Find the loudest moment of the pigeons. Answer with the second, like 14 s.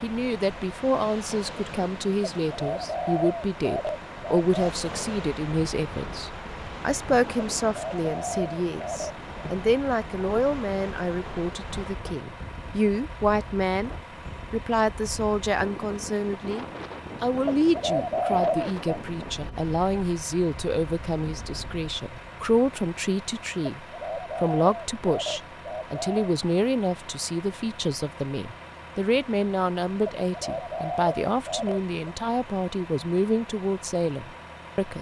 18 s.